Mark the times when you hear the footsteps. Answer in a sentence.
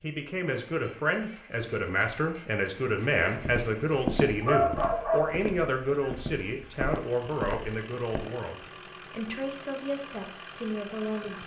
The footsteps can be heard from 3.1 to 8.3 s.